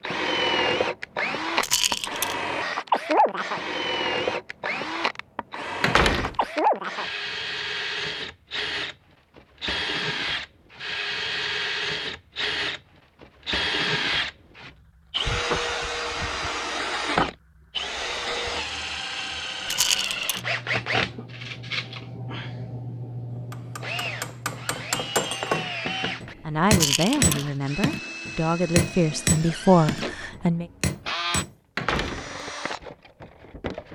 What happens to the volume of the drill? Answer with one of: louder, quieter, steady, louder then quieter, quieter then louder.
quieter.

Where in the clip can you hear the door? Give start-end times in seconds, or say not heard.
5.8-6.3, 31.8-32.3.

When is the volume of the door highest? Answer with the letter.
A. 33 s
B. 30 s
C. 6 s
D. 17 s
C.